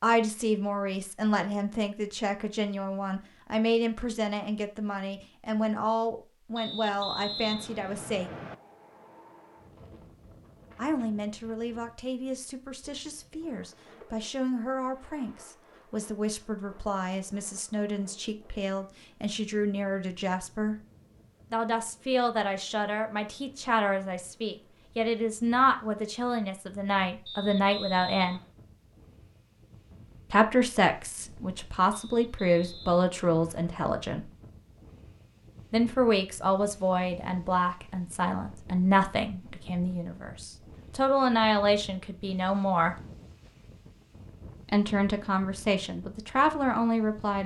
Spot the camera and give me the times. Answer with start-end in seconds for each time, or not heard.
not heard.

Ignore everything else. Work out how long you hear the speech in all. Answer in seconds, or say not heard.
39 s.